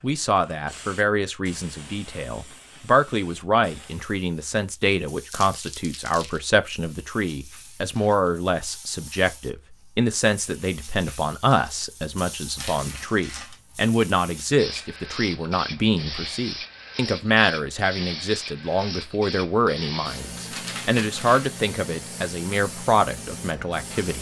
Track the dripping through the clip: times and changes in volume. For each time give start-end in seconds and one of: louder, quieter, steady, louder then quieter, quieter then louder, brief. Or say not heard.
not heard.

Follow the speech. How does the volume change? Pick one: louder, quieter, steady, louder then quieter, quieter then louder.
steady.